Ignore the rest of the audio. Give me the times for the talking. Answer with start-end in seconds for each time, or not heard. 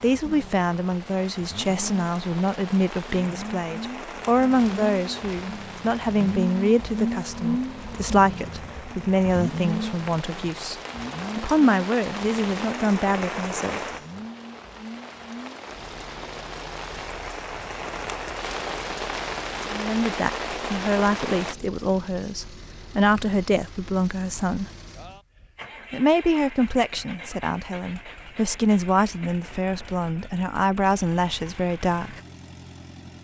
0.0-13.8, 19.7-24.7, 25.9-32.2.